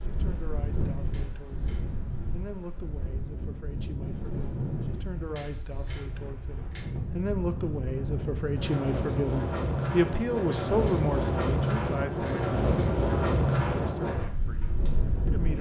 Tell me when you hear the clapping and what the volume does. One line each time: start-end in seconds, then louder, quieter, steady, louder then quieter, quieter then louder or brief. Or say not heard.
not heard.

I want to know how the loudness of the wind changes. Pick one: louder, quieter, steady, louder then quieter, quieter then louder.
louder.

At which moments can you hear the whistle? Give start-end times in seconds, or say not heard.
not heard.